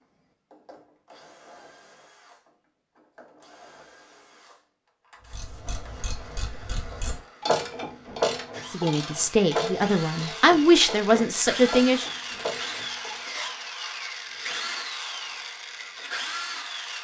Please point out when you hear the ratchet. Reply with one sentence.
The ratchet can be heard from 5.3 to 13.3 s.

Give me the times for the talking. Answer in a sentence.
The talking can be heard from 8.7 to 12.1 s.